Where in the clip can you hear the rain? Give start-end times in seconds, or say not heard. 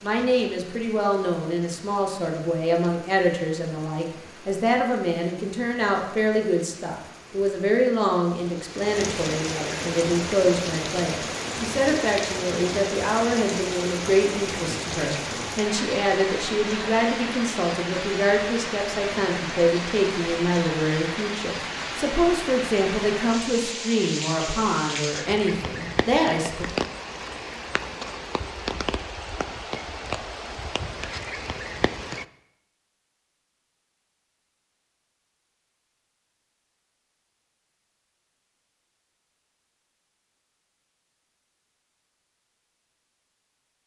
0.0-32.2.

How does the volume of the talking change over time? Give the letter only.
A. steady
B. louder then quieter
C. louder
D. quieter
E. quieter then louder
A.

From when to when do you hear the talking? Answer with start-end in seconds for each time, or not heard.
0.0-26.6.